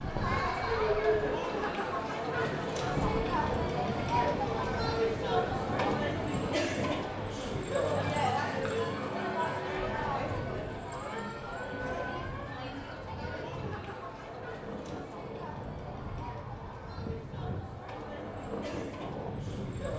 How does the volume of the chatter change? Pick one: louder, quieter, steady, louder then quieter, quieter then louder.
quieter.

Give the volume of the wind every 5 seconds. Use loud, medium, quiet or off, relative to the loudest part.
loud, loud, medium, loud.